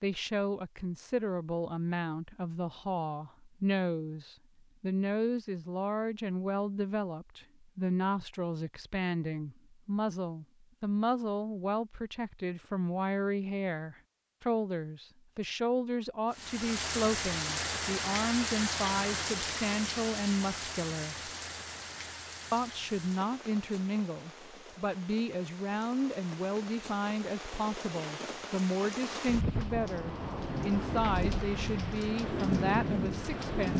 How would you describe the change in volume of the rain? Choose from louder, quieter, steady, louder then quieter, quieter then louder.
quieter then louder.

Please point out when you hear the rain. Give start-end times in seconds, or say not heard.
16.3-33.7.